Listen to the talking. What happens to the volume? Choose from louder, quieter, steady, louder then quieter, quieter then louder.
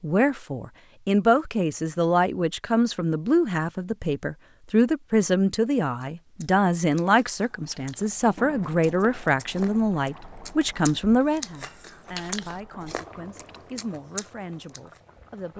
quieter.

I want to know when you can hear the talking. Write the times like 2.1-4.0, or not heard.
0.0-15.5.